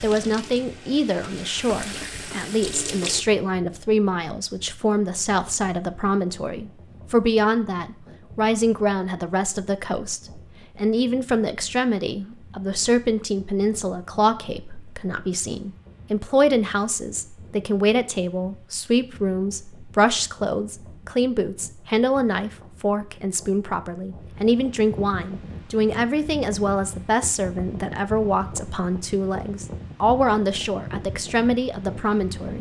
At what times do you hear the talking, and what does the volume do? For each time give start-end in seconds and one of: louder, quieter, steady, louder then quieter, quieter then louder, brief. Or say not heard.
0.0-32.5 steady.